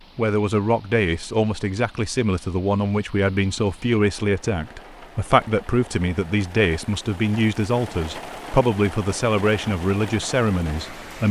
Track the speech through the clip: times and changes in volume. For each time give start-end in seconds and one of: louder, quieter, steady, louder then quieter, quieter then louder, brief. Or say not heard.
0.1-11.2 steady.